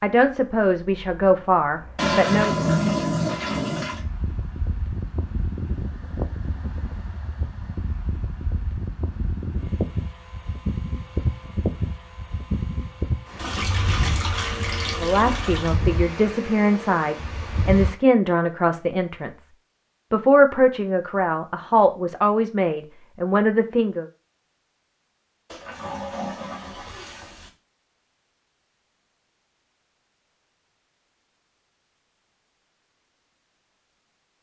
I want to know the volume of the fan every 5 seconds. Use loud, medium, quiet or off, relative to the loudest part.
medium, loud, loud, loud, off, off, off.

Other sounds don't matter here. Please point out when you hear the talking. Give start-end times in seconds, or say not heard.
0.0-2.5, 15.0-19.4, 20.1-24.1.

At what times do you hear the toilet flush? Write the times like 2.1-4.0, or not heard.
1.9-4.0, 13.3-15.8, 25.5-27.5.